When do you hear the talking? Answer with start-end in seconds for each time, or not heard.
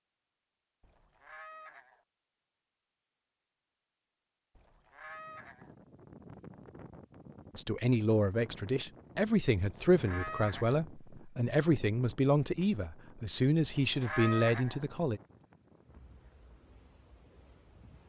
7.5-15.2.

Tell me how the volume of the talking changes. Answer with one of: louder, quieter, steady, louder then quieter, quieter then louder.
steady.